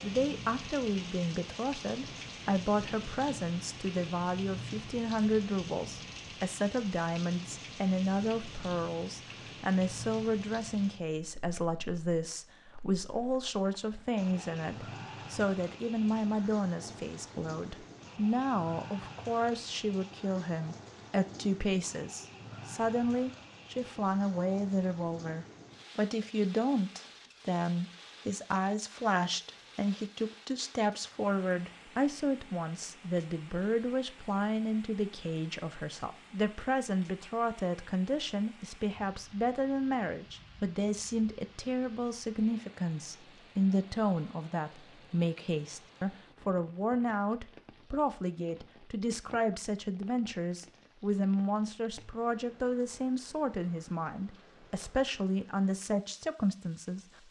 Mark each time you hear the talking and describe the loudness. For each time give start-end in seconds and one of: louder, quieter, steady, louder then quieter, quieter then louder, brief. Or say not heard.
0.0-57.0 steady.